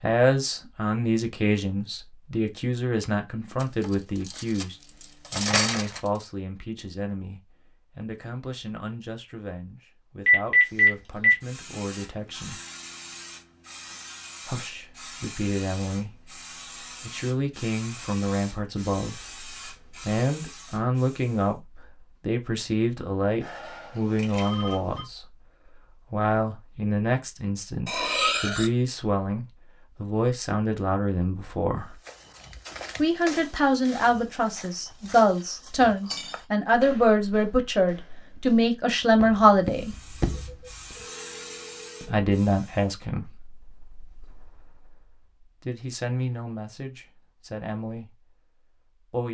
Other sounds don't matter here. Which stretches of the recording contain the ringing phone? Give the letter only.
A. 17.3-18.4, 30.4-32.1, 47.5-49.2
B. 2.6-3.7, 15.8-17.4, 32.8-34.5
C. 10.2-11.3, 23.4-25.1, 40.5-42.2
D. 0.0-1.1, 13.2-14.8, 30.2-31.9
C.